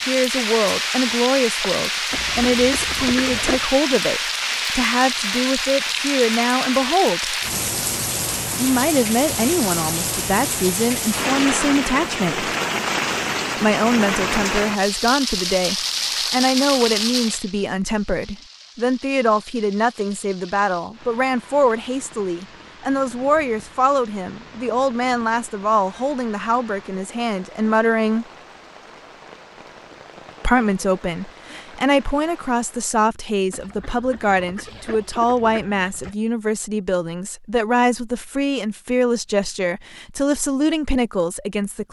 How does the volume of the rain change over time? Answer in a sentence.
The volume of the rain goes down.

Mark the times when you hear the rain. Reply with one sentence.
You can hear the rain from 0.0 to 33.0 s.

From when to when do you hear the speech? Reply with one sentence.
You can hear the speech from 0.1 to 7.3 s, from 8.6 to 12.5 s, from 13.6 to 28.2 s and from 30.4 to 41.8 s.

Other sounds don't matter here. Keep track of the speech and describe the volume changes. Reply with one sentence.
The loudness of the speech stays about the same.